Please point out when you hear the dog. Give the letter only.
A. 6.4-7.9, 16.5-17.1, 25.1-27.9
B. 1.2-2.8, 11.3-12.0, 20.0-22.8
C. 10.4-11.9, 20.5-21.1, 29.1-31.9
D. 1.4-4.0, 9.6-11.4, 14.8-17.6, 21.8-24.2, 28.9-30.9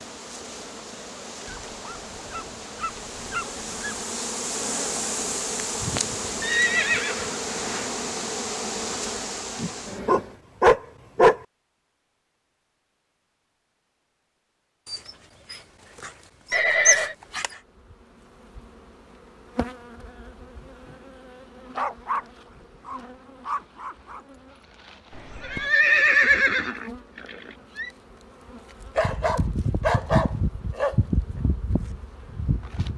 D.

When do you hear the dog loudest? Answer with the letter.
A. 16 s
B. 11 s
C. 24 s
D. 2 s
B.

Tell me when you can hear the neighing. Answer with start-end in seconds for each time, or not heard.
6.4-7.9, 16.5-17.1, 25.1-27.9.